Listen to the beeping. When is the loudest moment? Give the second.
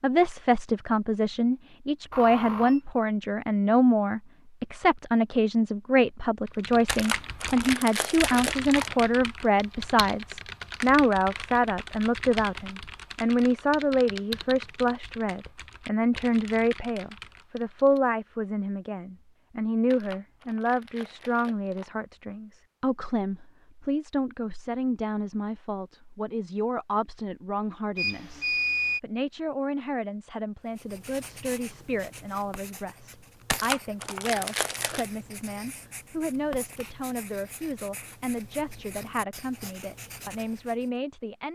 29 s.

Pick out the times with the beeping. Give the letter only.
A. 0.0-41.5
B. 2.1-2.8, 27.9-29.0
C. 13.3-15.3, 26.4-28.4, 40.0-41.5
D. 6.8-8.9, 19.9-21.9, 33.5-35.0
B.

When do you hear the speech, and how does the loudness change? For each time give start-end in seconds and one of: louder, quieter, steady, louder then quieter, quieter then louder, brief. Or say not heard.
0.0-41.5 quieter.